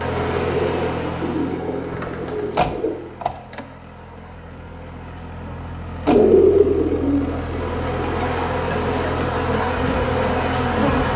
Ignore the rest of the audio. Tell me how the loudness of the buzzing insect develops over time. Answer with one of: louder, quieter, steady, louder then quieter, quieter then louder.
quieter then louder.